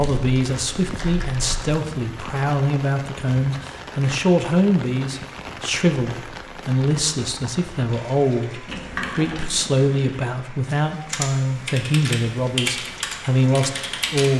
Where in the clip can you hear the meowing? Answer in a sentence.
You can't hear the meowing here.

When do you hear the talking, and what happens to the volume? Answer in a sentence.
The talking can be heard from 0.0 to 14.3 s, at a steady volume.